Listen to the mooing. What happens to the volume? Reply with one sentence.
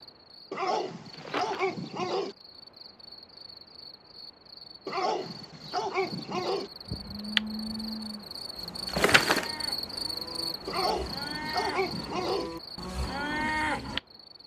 The loudness of the mooing goes down, then up.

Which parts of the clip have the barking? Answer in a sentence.
You can hear the barking from 0.5 to 2.4 s, from 4.8 to 6.7 s and from 10.7 to 12.5 s.